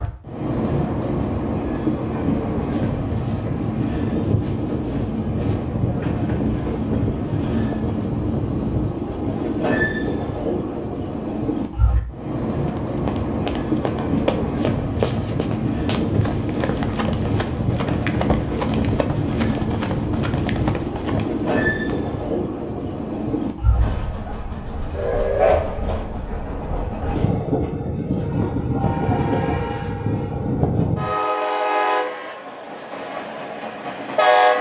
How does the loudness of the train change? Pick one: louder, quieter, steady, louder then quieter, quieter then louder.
steady.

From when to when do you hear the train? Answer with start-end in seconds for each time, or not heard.
0.0-34.5.